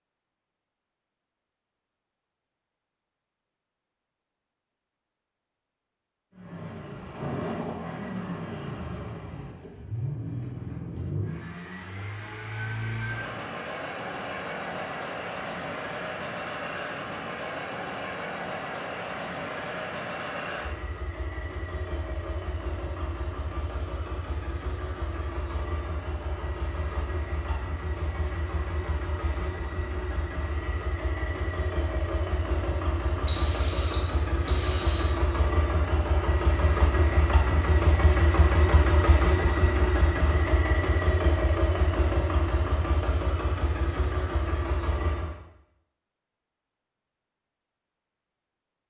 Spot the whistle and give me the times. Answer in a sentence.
The whistle can be heard from 33.2 to 35.1 s.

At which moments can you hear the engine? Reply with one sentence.
The engine can be heard from 6.3 to 45.4 s.